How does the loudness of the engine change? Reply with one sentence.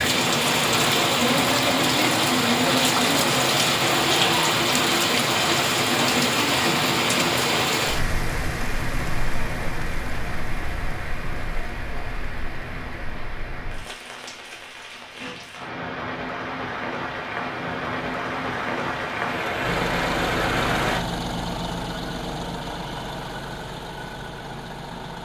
The volume of the engine goes down.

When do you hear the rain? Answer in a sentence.
You can hear the rain from 0.0 to 21.0 s.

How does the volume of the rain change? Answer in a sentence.
The volume of the rain goes down, then up.